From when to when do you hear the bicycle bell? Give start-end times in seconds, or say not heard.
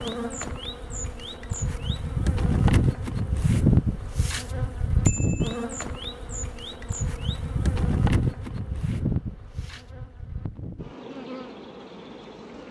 5.0-5.7.